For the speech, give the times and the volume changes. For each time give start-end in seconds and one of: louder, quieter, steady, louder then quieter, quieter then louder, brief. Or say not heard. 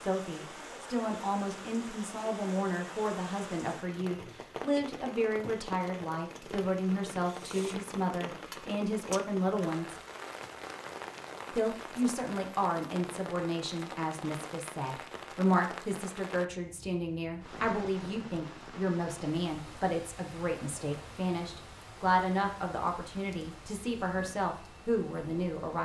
0.0-9.9 steady
11.5-25.8 steady.